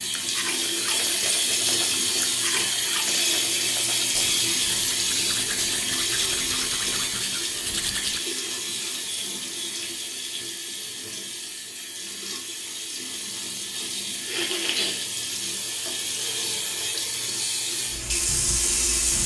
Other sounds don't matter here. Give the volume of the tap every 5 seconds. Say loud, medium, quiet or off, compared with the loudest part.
loud, loud, medium, loud.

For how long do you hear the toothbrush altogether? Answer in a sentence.
You can hear the toothbrush for 8 seconds altogether.